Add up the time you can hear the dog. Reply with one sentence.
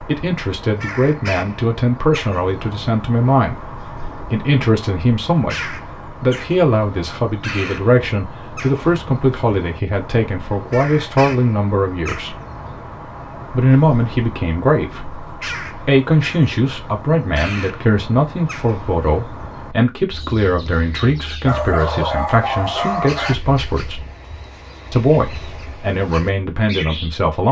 You can hear the dog for 2 seconds altogether.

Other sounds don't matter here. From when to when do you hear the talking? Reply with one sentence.
The talking can be heard from 0.1 to 12.3 s, from 13.5 to 24.1 s and from 24.9 to 27.4 s.